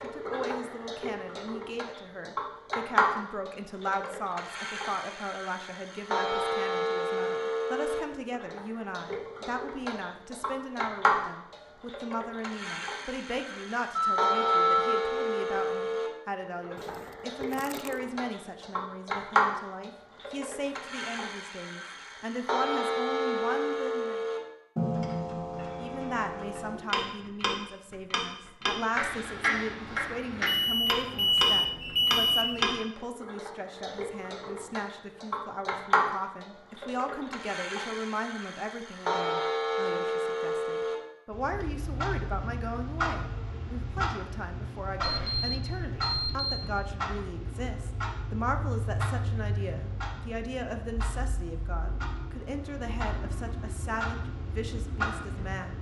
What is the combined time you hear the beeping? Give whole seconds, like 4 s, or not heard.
5 s.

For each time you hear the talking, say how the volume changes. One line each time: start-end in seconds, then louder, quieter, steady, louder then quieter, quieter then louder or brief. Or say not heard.
0.0-24.2 steady
25.8-55.7 steady.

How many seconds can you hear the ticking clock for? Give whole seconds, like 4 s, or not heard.
56 s.